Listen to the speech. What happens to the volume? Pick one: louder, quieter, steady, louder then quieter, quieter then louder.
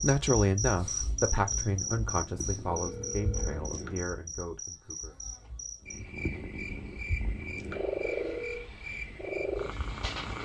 quieter.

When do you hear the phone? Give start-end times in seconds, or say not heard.
2.6-3.6, 8.0-8.7.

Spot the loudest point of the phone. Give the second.
8 s.